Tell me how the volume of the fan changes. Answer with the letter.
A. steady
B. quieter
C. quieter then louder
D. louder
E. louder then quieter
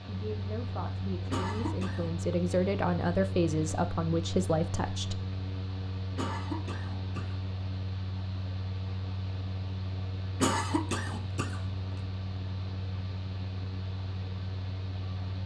A.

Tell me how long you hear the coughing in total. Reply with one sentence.
The coughing can be heard for 3 seconds in total.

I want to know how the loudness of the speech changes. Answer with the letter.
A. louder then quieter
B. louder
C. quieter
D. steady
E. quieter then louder
B.